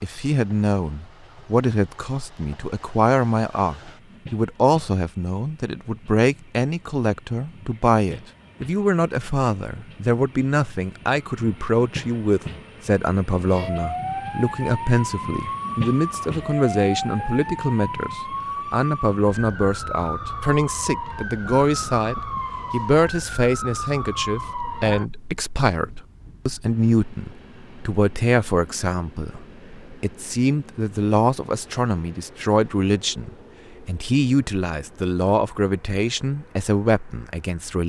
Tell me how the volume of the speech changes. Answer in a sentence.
The volume of the speech stays about the same.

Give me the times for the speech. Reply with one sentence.
You can hear the speech from 0.0 to 37.8 s.